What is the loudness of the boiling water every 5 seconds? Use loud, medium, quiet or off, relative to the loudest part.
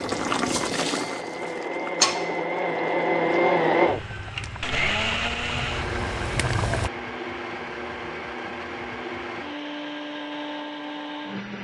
loud, loud, off.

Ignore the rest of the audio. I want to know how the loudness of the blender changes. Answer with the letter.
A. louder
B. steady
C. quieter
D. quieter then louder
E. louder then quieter
E.